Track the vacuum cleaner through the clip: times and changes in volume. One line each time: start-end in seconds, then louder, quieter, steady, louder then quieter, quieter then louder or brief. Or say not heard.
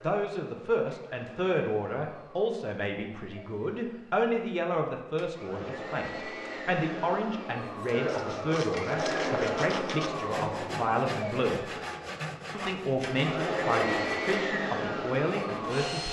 0.0-16.0 louder.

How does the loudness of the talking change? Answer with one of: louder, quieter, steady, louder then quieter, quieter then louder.
steady.